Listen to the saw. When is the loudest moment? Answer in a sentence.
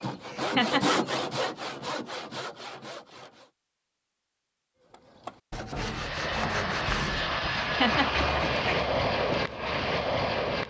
The loudest moment of the saw is at 1 second.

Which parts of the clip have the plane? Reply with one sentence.
The plane can be heard from 5.7 to 10.6 s.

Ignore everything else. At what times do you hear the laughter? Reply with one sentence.
You can hear the laughter from 0.2 to 1.5 s and from 7.6 to 8.8 s.